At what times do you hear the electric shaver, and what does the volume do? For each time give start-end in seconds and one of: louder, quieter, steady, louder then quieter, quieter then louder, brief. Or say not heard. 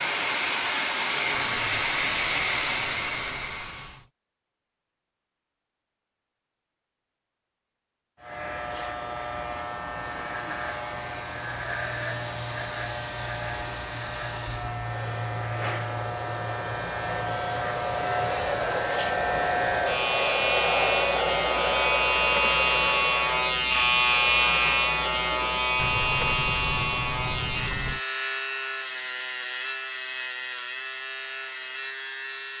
8.2-32.5 louder then quieter.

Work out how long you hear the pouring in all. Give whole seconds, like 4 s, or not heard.
5 s.